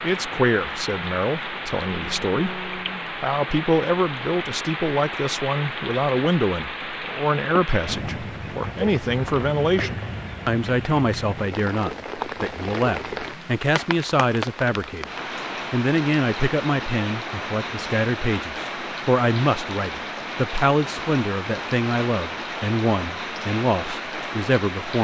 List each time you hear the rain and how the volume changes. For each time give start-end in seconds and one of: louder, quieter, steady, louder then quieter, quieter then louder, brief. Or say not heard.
0.0-24.9 steady.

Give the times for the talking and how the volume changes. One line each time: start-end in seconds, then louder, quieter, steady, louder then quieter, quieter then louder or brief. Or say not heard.
0.0-15.1 steady
15.7-24.9 steady.